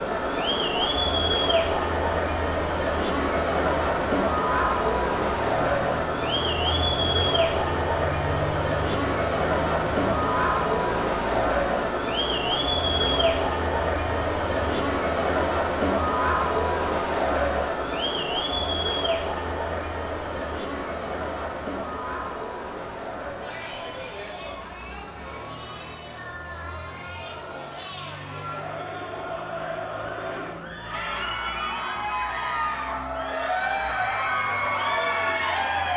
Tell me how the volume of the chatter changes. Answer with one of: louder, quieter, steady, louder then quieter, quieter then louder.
quieter then louder.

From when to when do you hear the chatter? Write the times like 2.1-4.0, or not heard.
0.0-35.9.